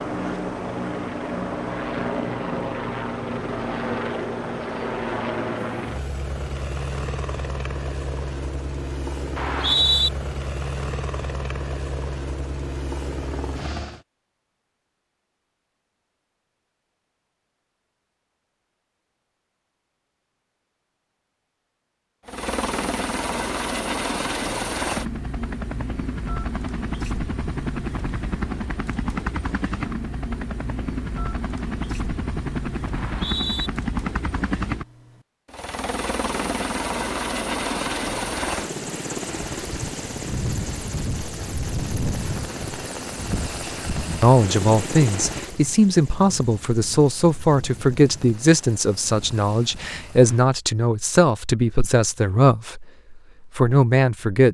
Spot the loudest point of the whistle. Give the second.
10 s.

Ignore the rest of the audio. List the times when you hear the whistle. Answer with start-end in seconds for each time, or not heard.
9.3-10.1, 32.9-33.7.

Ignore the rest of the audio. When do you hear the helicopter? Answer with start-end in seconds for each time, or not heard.
0.0-14.0, 22.2-50.5.